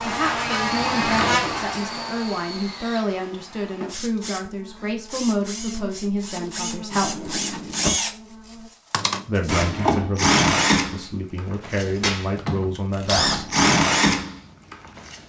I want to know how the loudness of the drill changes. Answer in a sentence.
The loudness of the drill goes up.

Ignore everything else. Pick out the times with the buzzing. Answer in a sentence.
The buzzing can be heard from 0.0 to 8.7 s.